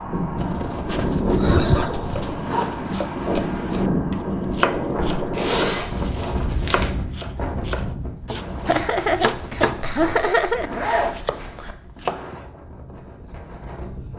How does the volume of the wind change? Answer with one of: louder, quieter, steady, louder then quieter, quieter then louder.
quieter.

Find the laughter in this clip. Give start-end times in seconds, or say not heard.
1.4-2.0, 8.7-10.7.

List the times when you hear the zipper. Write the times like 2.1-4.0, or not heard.
0.3-3.0, 5.3-6.9, 10.4-11.8.